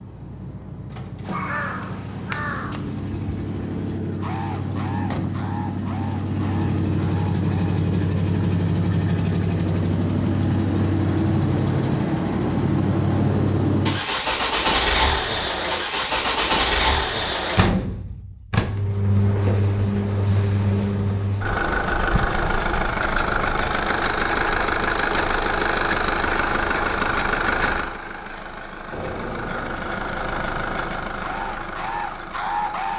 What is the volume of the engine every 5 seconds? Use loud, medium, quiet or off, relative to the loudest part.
medium, loud, loud, loud, loud, loud, medium.